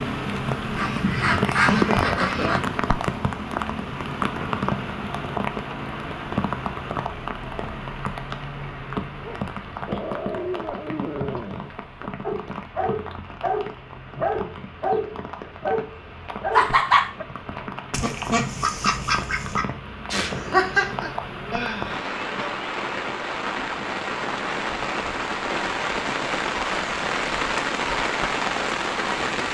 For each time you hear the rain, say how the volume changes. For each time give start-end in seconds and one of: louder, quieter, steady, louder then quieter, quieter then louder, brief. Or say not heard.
0.0-29.4 quieter then louder.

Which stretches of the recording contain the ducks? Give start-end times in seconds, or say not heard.
0.8-2.6, 17.9-19.6.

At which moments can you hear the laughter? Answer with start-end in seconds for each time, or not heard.
1.6-2.5, 16.5-17.1, 20.1-22.5.